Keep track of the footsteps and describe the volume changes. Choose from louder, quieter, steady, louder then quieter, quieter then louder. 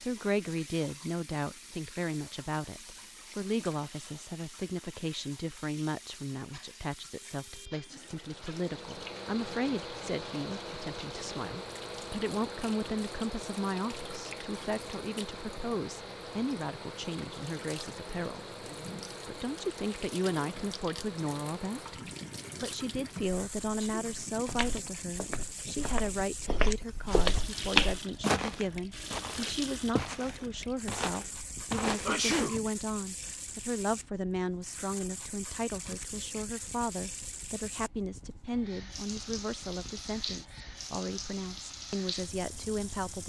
louder then quieter.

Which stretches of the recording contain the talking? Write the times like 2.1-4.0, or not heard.
0.0-18.6, 19.2-43.2.